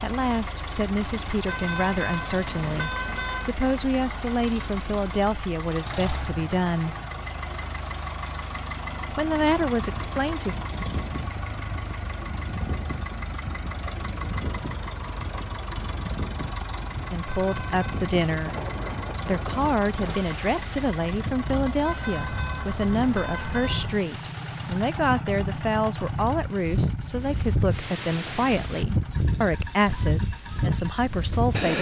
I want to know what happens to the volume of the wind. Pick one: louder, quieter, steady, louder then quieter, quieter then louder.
louder.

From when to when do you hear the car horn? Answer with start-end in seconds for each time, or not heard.
1.4-3.5, 17.3-18.1, 21.9-23.9.